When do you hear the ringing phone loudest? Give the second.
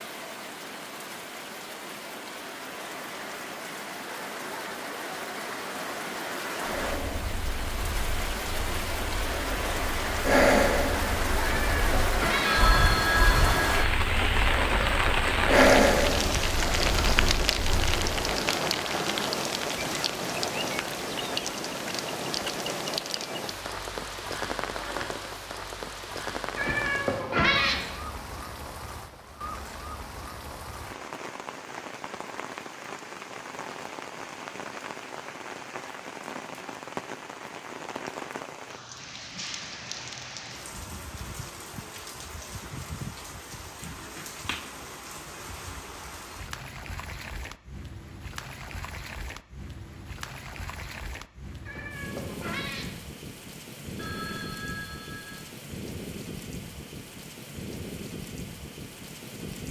13 s.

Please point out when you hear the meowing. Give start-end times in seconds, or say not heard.
11.4-12.7, 26.6-27.9, 51.6-53.0.